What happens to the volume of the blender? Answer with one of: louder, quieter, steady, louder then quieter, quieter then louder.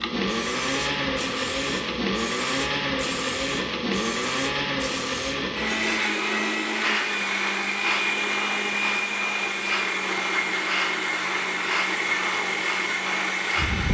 steady.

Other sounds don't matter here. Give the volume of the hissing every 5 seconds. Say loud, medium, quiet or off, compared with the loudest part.
medium, loud, loud.